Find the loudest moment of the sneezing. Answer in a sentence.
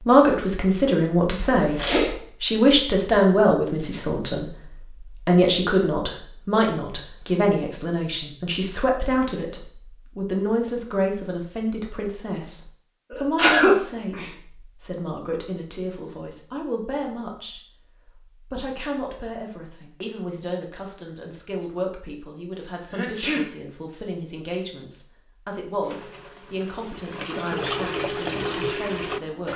The loudest moment of the sneezing is at 14 seconds.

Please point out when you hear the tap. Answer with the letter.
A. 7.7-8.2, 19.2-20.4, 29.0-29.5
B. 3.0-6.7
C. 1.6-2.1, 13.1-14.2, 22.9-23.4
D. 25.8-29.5
D.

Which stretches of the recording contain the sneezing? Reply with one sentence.
The sneezing can be heard from 1.6 to 2.1 s, from 13.1 to 14.2 s and from 22.9 to 23.4 s.